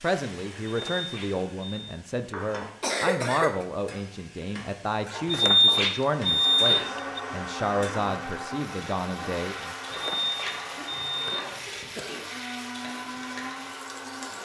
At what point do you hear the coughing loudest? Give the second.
3 s.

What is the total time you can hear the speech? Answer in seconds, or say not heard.
10 s.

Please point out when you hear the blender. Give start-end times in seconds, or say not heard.
6.1-14.3.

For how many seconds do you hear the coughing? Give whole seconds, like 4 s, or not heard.
2 s.